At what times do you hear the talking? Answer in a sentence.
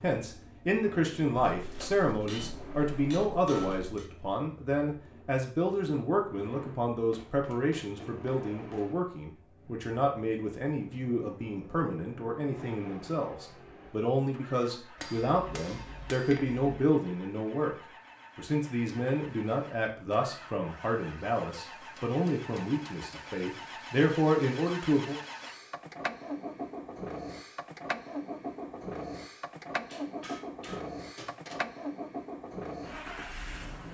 The talking can be heard from 0.0 to 17.8 s and from 18.4 to 25.1 s.